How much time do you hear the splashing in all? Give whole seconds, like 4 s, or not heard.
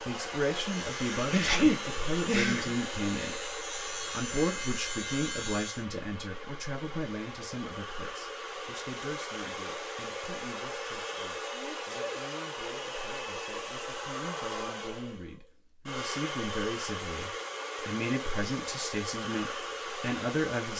not heard.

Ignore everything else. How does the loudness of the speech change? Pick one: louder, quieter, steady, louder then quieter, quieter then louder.
quieter then louder.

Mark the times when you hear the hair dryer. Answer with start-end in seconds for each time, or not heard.
0.0-20.7.